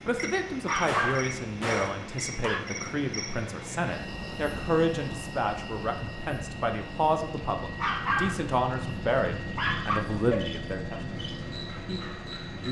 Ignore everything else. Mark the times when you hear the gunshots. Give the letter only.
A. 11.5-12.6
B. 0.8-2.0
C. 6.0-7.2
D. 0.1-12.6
B.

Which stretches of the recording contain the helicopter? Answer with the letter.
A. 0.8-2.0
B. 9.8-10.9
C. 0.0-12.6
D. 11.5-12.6
C.